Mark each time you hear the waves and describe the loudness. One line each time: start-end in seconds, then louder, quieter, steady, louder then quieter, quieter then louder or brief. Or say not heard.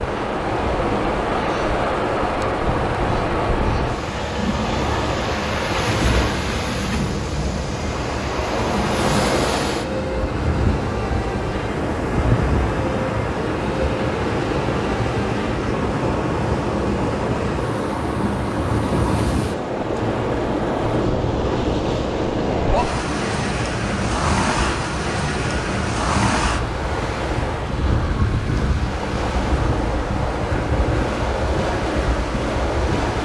0.0-33.1 steady.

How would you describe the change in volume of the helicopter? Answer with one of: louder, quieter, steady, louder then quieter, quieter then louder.
steady.